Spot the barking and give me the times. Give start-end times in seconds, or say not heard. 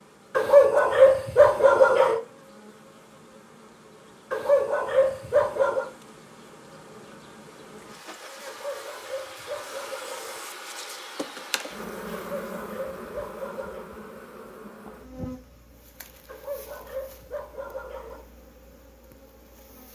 0.3-2.2, 4.3-5.9, 8.4-10.4, 12.2-13.9, 16.2-18.2.